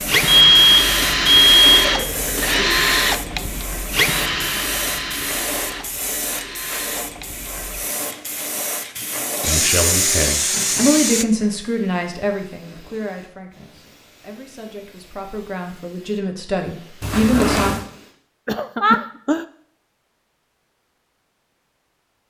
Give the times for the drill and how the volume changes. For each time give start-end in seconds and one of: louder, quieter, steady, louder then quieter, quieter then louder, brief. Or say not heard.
0.0-11.2 quieter then louder.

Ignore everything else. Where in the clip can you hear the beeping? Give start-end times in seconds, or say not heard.
0.2-1.9, 17.0-17.9.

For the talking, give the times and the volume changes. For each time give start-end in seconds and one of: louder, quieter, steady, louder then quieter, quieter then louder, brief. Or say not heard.
9.4-17.8 quieter then louder.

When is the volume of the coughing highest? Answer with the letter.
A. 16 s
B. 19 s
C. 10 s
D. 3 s
B.